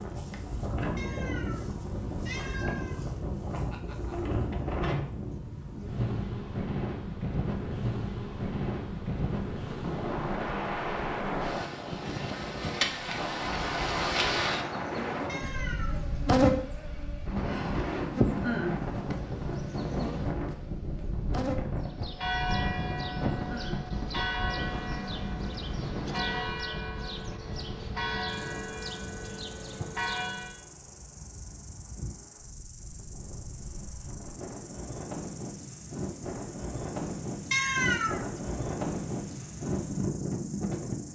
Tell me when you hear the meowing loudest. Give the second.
38 s.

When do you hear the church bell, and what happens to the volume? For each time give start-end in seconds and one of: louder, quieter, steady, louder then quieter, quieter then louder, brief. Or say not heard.
21.8-30.6 steady.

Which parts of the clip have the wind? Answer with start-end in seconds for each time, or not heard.
0.0-41.1.